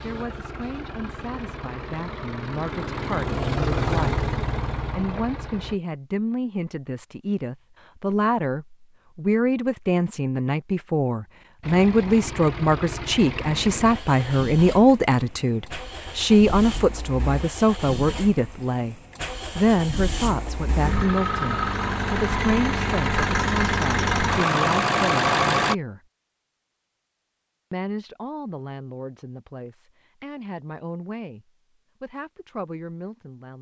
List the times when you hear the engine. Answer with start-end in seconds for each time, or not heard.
0.0-5.8, 11.6-25.8.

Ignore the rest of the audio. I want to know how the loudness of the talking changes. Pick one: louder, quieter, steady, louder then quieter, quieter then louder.
louder then quieter.